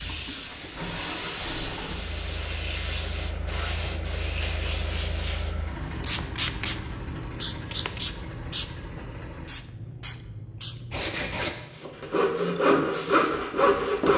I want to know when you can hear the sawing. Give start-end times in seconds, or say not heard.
0.0-1.6, 10.9-14.1.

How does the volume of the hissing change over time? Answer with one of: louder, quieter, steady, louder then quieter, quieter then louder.
quieter.